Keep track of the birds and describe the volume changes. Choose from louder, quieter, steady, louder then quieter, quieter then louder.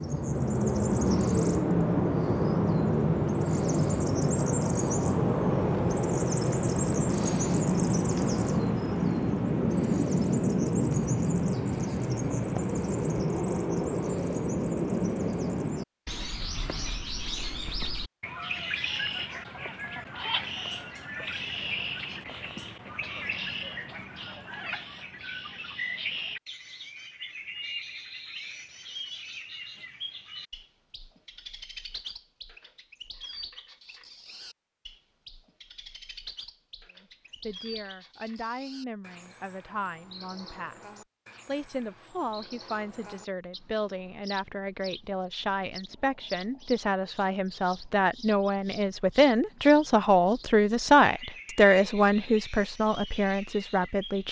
quieter.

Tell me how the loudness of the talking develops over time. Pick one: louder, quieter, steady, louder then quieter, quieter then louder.
louder.